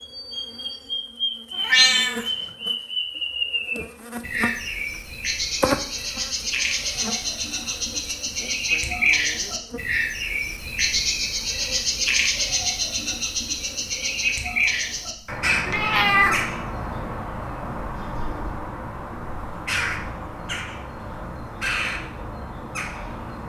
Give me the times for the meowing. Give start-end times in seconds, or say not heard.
1.6-2.3, 15.7-16.6.